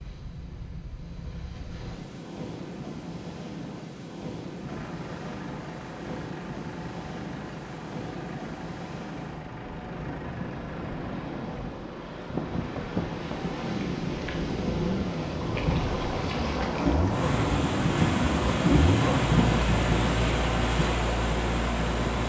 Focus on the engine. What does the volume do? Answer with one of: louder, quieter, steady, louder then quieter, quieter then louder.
louder.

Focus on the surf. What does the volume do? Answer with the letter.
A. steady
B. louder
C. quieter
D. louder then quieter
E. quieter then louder
B.